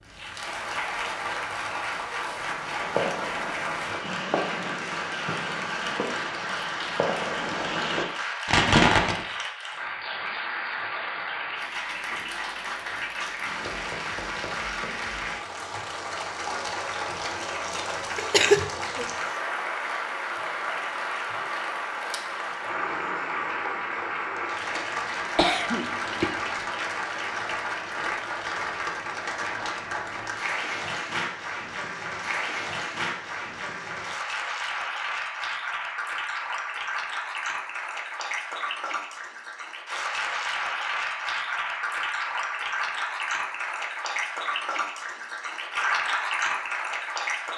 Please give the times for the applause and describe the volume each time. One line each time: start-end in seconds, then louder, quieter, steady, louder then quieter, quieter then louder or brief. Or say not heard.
0.0-47.5 steady.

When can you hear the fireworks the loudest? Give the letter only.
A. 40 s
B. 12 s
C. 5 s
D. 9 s
D.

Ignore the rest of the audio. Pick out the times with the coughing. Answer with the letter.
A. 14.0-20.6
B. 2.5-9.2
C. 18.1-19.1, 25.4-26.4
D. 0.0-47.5
C.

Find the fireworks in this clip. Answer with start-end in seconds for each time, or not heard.
2.5-9.2.